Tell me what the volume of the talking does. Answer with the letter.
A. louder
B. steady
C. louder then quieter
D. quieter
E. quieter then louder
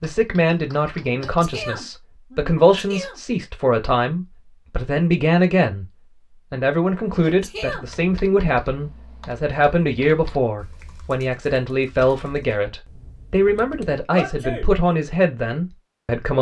B.